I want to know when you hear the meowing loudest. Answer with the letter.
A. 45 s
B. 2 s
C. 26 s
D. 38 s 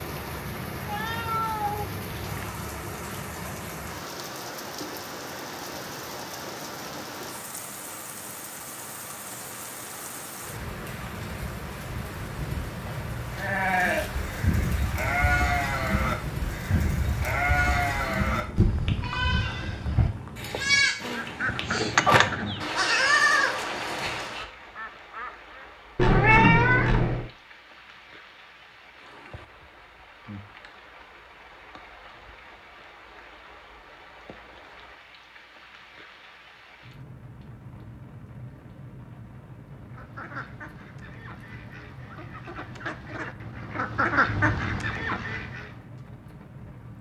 C.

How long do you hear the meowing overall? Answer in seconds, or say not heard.
4 s.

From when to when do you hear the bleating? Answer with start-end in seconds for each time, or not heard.
13.3-24.4.